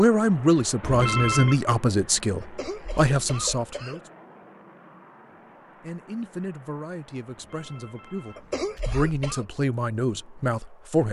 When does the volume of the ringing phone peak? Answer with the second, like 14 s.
1 s.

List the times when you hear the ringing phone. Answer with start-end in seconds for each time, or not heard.
0.8-1.6, 7.3-8.9.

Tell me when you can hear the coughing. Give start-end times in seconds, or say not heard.
2.4-4.0, 8.3-9.4.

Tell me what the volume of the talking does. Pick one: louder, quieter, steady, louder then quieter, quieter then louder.
quieter then louder.